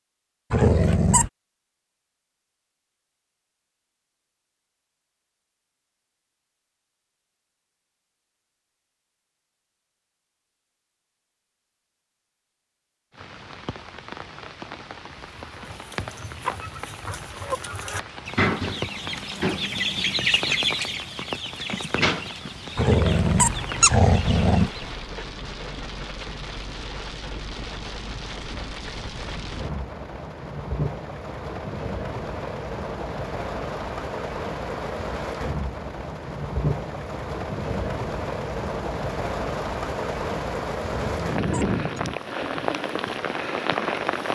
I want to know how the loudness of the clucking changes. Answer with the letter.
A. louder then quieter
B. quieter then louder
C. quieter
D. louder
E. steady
A.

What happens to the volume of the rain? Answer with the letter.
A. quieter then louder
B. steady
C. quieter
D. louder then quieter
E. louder
E.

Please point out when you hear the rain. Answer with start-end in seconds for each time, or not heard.
13.1-44.3.